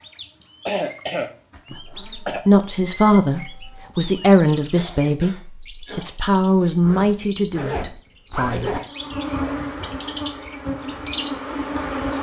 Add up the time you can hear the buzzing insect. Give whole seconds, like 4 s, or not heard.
3 s.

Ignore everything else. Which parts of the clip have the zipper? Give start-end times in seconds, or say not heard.
1.5-2.2, 6.8-8.8.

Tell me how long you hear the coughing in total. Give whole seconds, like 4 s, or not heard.
4 s.